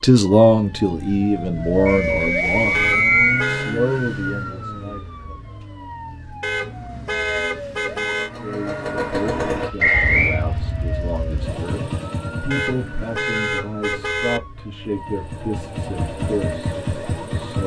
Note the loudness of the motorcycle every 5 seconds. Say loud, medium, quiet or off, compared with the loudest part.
off, loud, medium, loud.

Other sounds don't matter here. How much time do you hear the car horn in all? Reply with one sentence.
You can hear the car horn for 5 seconds altogether.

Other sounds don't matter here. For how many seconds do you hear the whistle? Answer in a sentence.
The whistle can be heard for 2 seconds in total.